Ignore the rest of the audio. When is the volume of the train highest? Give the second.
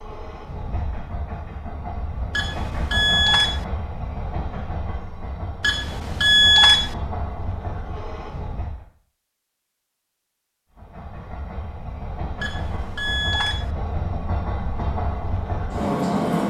16 s.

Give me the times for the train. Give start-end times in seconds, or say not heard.
0.0-8.8, 10.8-16.4.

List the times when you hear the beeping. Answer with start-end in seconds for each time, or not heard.
2.4-3.6, 5.6-7.0, 12.4-13.7.